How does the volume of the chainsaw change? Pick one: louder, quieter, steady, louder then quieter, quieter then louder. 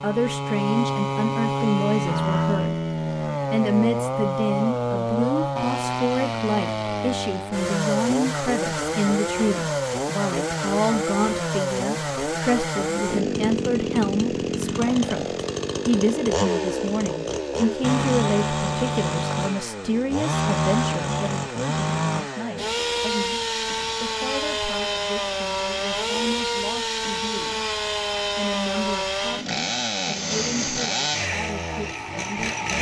steady.